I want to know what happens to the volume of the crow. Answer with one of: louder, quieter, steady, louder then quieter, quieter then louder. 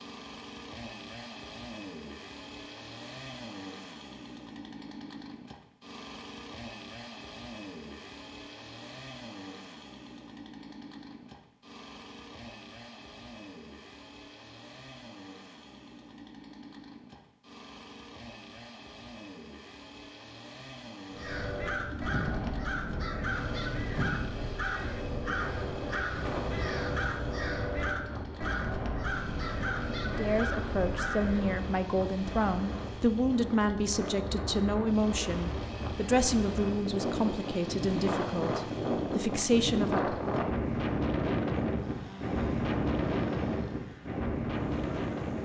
steady.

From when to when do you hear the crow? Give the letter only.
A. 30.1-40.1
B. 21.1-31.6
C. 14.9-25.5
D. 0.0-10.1
B.